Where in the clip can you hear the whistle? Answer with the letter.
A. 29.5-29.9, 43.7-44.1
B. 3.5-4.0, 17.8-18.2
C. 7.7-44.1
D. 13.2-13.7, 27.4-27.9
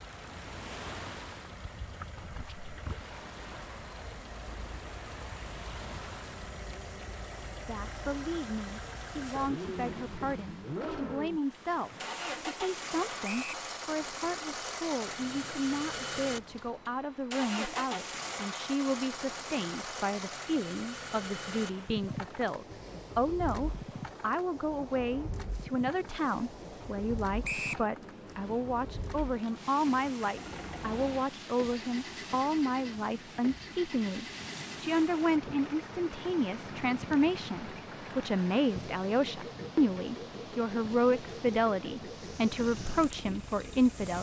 D.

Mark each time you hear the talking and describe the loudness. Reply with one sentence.
You can hear the talking from 7.7 to 44.1 s, getting louder.